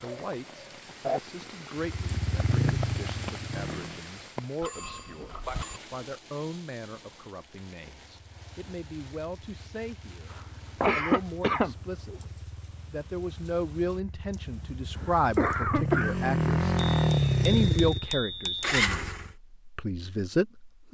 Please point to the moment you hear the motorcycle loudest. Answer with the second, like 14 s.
17 s.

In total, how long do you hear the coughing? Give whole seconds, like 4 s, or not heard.
4 s.